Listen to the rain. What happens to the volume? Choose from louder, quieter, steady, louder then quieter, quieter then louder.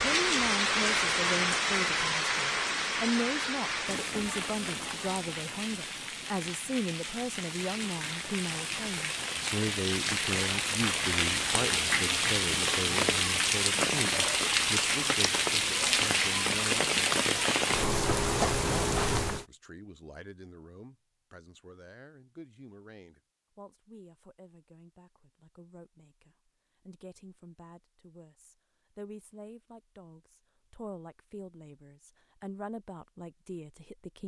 quieter then louder.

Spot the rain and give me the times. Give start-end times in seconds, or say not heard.
0.0-19.4.